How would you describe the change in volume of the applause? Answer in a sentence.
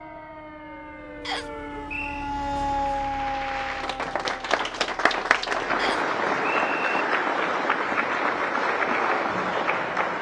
The volume of the applause goes up.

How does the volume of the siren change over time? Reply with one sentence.
The loudness of the siren goes up, then down.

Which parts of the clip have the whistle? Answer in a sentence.
The whistle can be heard from 1.2 to 2.3 s and from 5.8 to 7.0 s.